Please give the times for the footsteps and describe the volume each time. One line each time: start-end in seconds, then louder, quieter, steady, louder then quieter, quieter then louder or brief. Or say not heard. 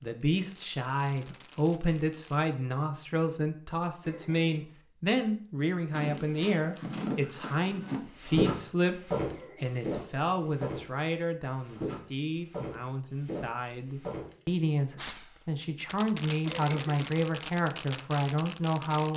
5.9-14.4 louder then quieter.